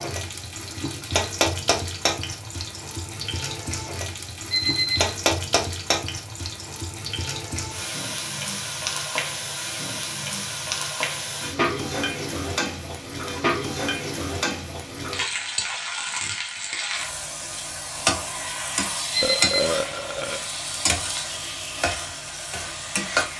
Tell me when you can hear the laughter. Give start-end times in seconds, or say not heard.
not heard.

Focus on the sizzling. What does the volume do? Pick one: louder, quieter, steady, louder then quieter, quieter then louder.
steady.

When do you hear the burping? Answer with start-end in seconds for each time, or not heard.
19.2-20.5.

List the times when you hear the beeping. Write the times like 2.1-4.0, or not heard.
4.5-5.2, 19.1-19.7.